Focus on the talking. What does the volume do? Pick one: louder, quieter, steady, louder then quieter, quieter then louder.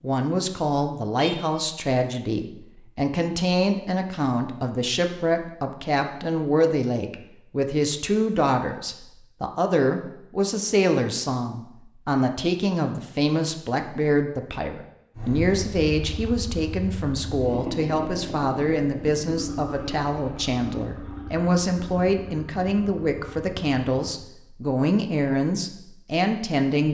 steady.